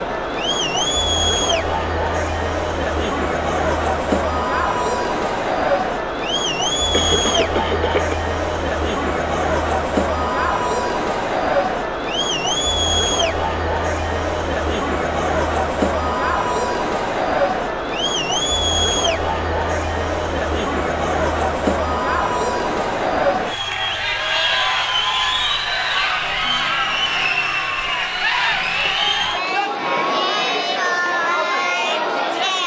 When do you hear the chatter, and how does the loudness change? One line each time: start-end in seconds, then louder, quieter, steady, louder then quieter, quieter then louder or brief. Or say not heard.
0.0-32.6 steady.